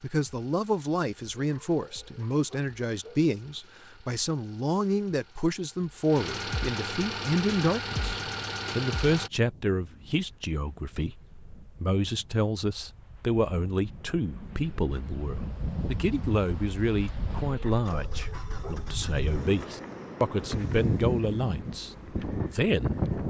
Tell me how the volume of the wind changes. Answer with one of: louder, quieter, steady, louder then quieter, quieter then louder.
louder.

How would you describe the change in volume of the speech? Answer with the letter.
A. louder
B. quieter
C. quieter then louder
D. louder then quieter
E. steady
E.